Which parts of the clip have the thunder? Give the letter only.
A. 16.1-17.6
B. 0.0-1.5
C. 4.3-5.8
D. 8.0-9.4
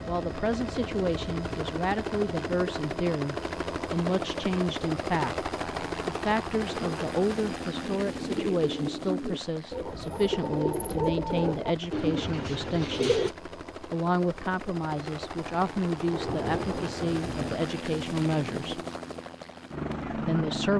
A.